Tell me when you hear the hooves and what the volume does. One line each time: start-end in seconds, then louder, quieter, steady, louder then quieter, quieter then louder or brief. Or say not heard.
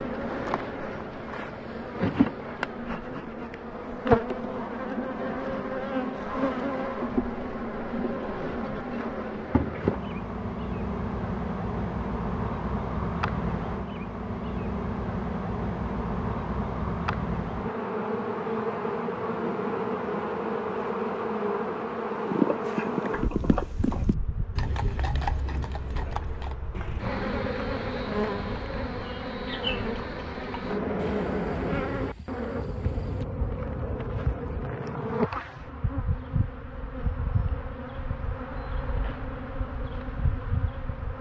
22.1-33.2 quieter.